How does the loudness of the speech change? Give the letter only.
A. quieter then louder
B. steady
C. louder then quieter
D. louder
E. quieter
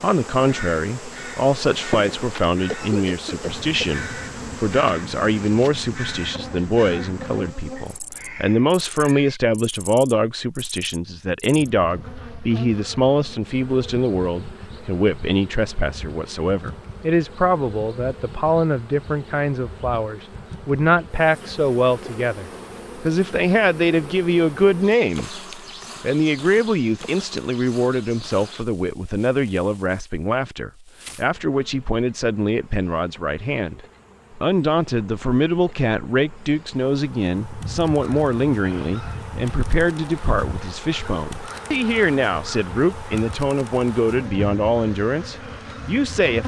B.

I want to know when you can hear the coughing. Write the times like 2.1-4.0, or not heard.
2.6-4.0.